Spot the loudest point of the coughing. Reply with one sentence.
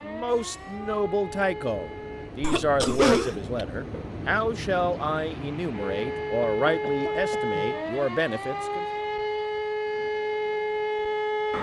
The loudest moment of the coughing is at 3 seconds.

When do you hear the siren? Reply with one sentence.
The siren can be heard from 0.0 to 2.4 s and from 5.7 to 11.5 s.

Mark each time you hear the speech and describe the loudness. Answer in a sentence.
The speech can be heard from 0.0 to 8.8 s, at a steady volume.